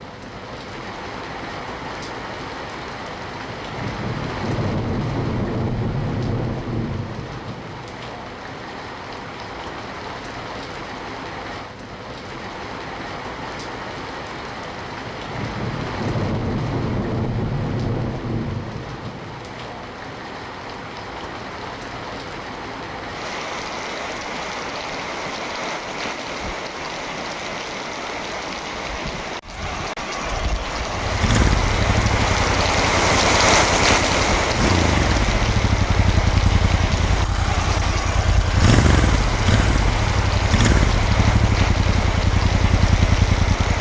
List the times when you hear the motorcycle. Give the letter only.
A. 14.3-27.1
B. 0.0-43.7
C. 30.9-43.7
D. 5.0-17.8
C.